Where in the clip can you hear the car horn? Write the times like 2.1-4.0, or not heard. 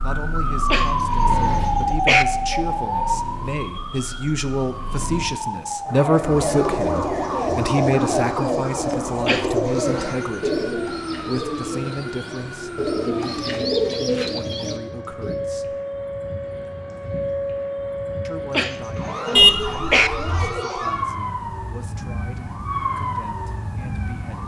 19.4-20.6.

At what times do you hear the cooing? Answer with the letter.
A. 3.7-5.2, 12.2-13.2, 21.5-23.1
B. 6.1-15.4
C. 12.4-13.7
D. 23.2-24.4
B.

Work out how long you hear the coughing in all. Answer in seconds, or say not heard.
4 s.